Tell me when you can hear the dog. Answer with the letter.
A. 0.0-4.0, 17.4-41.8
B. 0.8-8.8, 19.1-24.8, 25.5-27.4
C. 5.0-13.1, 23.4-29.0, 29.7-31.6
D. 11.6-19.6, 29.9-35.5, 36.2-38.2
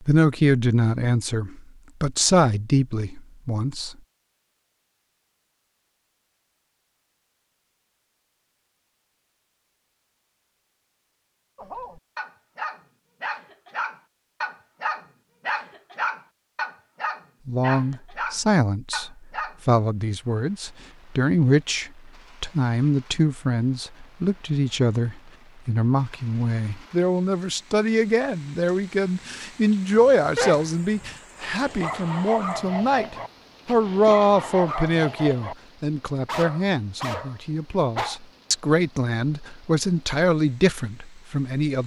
D.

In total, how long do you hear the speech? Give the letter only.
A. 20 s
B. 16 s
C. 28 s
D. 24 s
C.